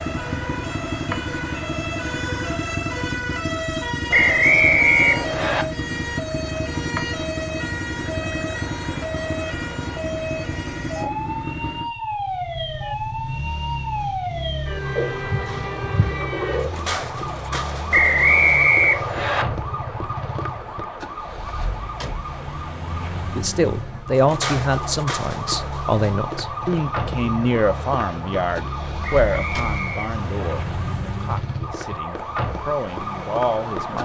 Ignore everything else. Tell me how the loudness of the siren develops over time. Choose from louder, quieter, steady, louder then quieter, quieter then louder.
steady.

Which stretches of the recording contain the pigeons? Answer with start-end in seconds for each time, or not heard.
14.9-16.8.